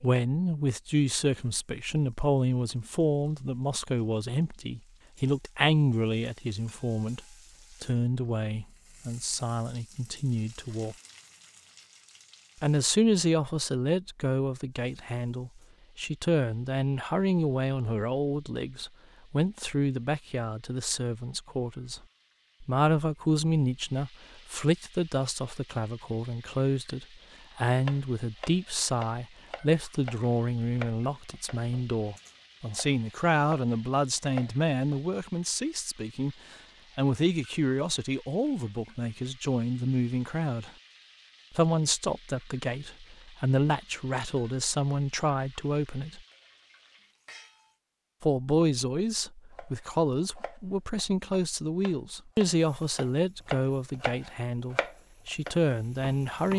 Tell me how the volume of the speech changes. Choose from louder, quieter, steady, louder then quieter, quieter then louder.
steady.